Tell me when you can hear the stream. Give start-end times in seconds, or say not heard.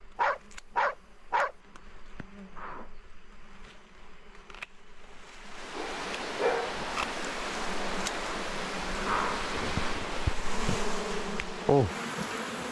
5.5-12.6.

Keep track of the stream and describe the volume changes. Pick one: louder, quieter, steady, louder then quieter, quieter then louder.
quieter.